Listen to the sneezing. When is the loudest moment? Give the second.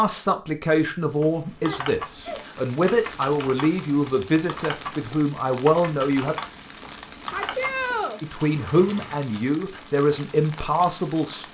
8 s.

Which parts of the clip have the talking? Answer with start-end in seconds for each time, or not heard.
0.0-6.3, 8.2-11.4.